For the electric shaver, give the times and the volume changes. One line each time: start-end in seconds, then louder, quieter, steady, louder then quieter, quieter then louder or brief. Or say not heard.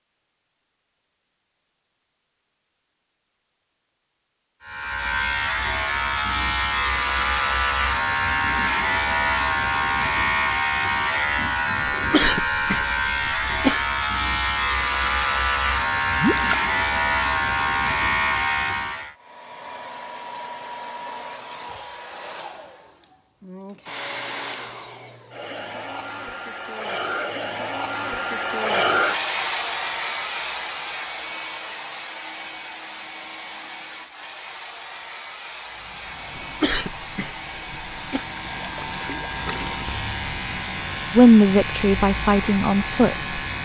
4.6-19.1 steady
35.6-43.6 louder.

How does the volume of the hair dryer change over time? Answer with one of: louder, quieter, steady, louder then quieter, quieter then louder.
louder then quieter.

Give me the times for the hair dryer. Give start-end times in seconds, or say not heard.
19.1-43.5.